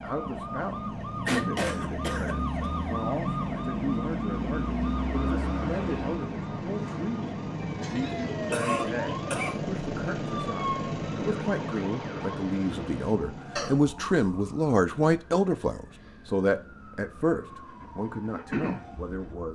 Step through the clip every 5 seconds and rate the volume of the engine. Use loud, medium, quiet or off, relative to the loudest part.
loud, loud, loud, quiet.